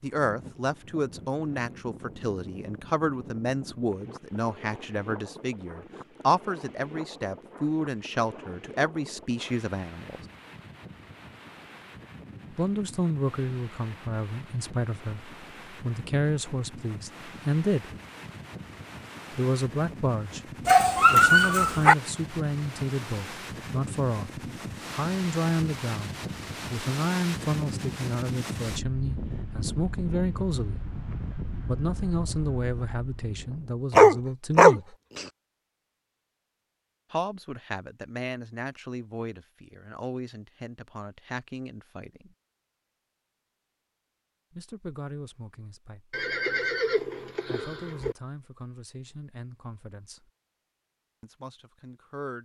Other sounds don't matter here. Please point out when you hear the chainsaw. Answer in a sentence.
You can't hear the chainsaw here.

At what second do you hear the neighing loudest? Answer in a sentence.
The volume of the neighing peaks at 47 seconds.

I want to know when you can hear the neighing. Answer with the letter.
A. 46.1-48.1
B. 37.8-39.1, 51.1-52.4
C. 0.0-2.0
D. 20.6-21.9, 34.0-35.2
A.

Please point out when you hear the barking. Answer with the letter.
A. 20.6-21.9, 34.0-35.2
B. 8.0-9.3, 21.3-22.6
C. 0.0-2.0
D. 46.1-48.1
A.